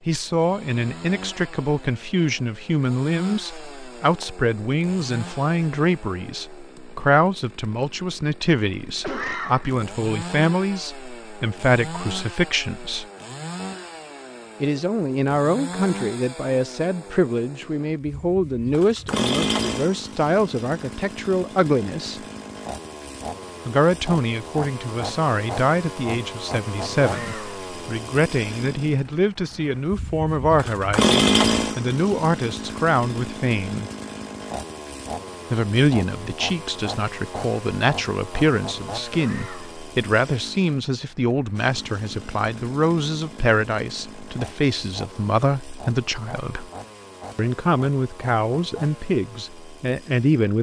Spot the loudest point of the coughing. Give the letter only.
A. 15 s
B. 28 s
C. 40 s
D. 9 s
D.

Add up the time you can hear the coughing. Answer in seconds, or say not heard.
2 s.